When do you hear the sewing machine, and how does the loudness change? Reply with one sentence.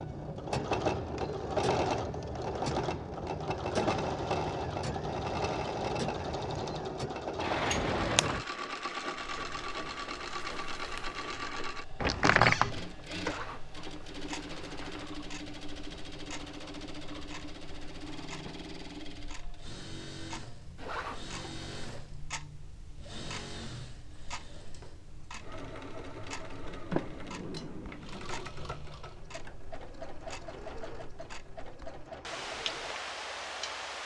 You can hear the sewing machine from 0.0 to 34.0 s, getting quieter.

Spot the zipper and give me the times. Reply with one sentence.
You can hear the zipper from 13.2 to 15.1 s and from 20.8 to 22.1 s.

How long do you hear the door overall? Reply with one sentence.
The door can be heard for 3 seconds in total.